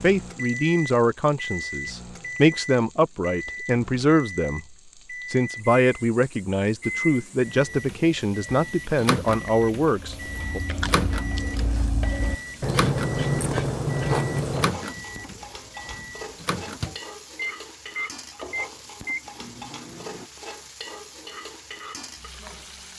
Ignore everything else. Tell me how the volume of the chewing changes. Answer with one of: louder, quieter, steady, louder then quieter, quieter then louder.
louder.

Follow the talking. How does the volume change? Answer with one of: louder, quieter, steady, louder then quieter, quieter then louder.
steady.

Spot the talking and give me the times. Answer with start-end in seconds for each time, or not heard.
0.0-4.7, 5.3-10.6.